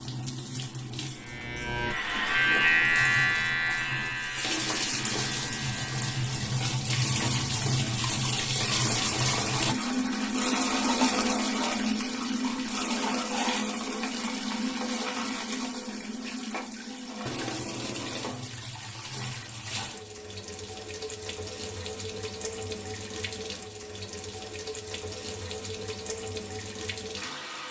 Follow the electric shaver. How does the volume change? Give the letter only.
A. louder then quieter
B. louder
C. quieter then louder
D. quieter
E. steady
A.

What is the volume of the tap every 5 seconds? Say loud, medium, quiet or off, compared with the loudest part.
medium, loud, loud, medium, medium, medium.